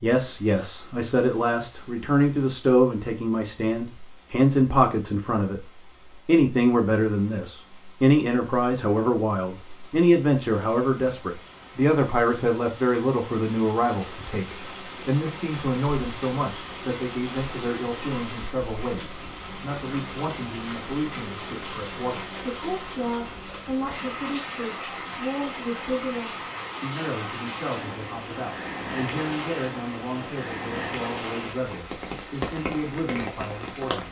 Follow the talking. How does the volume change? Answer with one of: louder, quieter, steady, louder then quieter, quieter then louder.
quieter.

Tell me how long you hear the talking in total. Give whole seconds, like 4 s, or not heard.
33 s.